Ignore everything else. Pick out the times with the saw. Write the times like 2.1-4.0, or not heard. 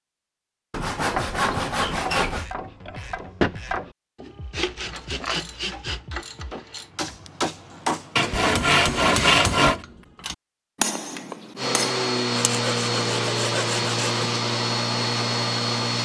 0.7-2.5, 4.5-6.0, 8.2-9.8, 12.3-14.2.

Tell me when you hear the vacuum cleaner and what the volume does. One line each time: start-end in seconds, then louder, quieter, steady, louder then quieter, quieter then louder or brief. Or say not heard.
11.6-15.9 steady.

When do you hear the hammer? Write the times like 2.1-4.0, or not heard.
4.8-11.9.